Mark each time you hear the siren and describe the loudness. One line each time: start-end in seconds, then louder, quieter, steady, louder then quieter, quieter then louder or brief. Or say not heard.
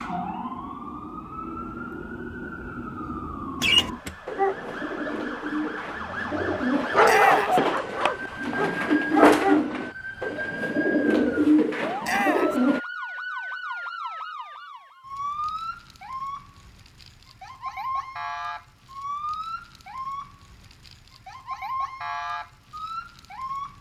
0.0-23.7 steady.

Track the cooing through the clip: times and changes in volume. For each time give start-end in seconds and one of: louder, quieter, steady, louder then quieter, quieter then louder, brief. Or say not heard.
3.6-12.8 louder.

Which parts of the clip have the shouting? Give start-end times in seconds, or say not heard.
7.0-7.6, 12.0-12.6.